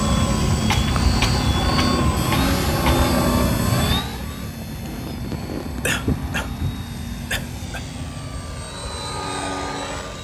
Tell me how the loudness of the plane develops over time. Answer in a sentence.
The volume of the plane goes down.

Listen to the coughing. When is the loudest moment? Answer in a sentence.
The loudest moment of the coughing is at 6 seconds.